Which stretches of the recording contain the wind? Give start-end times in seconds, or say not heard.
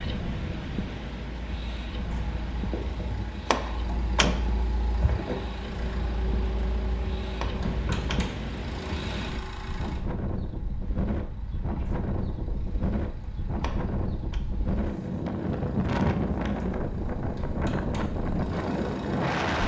0.0-19.6.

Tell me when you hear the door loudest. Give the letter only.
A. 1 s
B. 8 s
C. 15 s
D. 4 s
D.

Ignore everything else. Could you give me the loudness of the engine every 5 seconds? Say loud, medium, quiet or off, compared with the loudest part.
loud, loud, quiet, medium.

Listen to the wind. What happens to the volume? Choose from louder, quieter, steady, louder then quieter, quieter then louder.
louder.